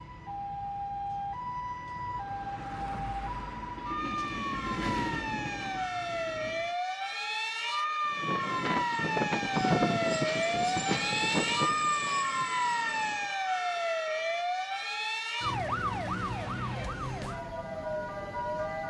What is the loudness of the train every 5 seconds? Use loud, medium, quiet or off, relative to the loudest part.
medium, loud, loud, off.